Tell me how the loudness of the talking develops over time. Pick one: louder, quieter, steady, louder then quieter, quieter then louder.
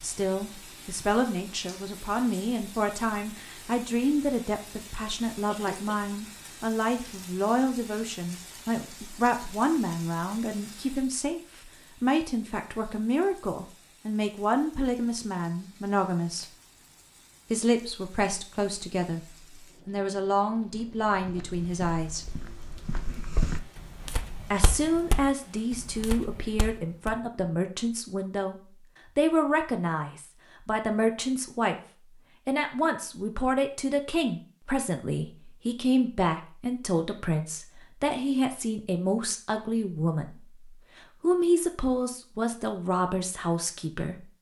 steady.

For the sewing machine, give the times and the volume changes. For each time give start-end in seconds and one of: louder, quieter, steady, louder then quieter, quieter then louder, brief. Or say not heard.
not heard.